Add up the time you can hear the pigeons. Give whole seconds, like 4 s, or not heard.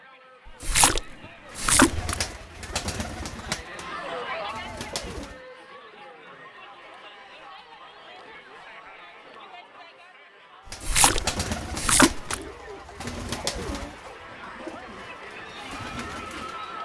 10 s.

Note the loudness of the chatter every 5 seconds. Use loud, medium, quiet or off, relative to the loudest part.
loud, medium, medium, loud.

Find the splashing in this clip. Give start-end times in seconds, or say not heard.
0.6-2.1, 10.8-12.3.